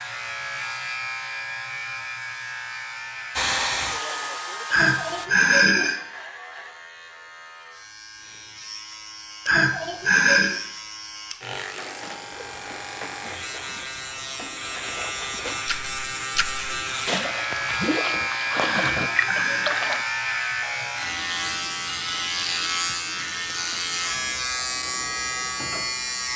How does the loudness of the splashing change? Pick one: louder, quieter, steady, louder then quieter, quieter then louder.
louder.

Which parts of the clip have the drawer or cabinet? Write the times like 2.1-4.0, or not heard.
not heard.